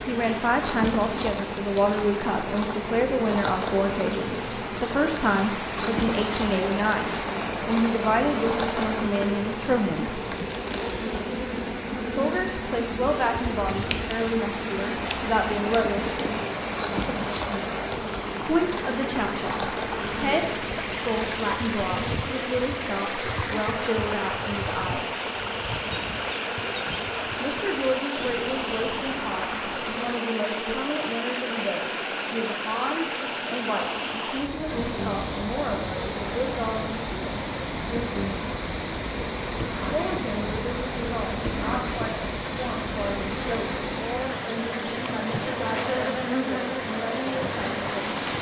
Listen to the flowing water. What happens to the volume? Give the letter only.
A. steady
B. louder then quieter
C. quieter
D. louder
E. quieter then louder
A.